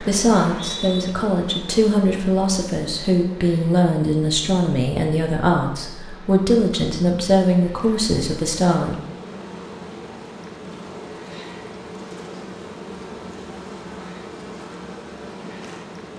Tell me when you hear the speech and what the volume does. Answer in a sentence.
The speech can be heard from 0.0 to 8.9 s, at a steady volume.